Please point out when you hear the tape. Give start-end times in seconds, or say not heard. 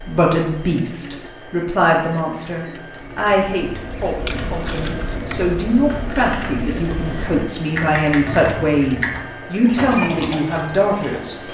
4.2-5.5.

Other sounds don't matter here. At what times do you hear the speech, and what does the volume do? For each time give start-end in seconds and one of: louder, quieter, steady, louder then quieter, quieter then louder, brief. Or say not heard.
0.0-11.4 steady.